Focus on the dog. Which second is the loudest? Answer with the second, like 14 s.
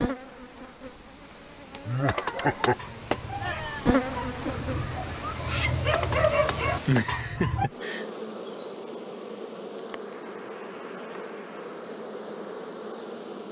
6 s.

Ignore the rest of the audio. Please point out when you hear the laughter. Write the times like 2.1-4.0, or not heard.
1.9-2.8, 6.8-8.1.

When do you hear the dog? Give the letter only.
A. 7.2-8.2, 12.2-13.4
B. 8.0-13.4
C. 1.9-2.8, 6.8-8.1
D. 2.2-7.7
D.